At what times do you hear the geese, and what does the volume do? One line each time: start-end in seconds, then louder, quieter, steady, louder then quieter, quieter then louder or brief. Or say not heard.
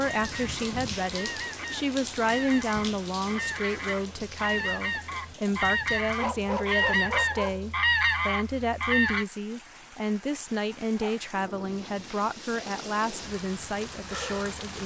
0.0-9.2 louder.